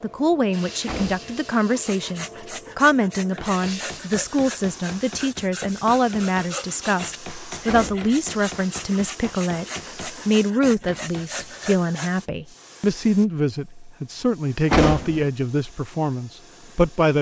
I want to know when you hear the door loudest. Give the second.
15 s.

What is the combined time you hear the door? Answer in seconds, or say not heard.
2 s.